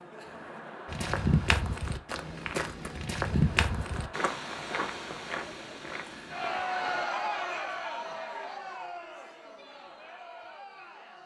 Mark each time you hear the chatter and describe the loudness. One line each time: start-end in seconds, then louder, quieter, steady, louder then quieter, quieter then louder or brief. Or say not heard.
0.0-11.2 louder then quieter.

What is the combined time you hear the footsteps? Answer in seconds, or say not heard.
6 s.